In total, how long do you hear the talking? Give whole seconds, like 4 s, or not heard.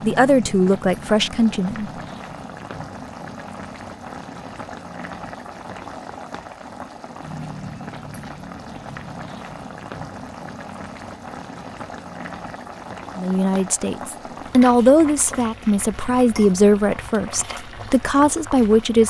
8 s.